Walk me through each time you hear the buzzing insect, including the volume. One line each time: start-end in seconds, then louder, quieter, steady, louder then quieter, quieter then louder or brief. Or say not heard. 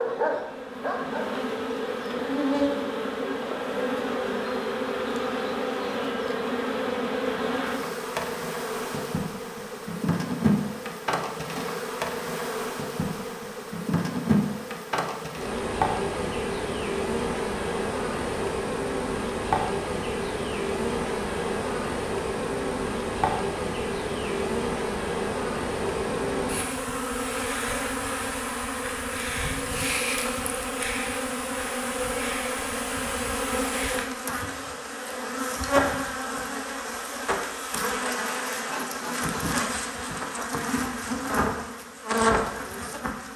0.0-43.3 steady.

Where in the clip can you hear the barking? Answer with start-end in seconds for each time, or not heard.
0.0-1.4.